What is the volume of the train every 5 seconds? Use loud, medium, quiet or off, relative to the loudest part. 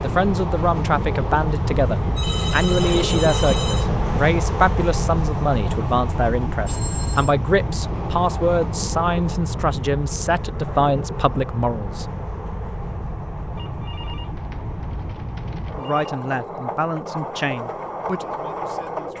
loud, loud, medium, medium.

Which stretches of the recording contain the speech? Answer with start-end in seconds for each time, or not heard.
0.0-12.1, 15.8-19.1.